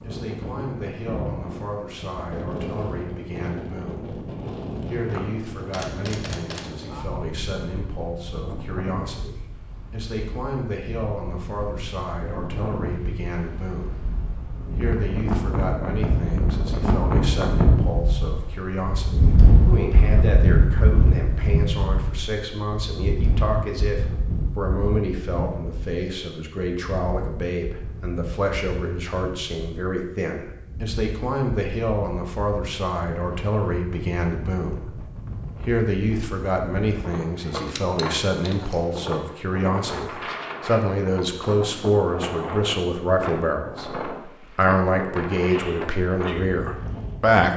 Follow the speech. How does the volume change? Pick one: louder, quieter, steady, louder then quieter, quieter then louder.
louder.